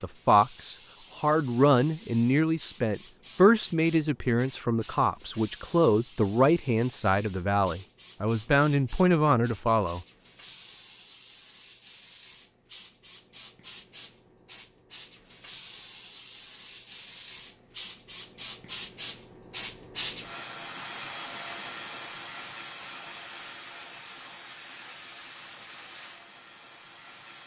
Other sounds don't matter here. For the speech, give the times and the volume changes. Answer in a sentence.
The speech can be heard from 0.0 to 10.1 s, at a steady volume.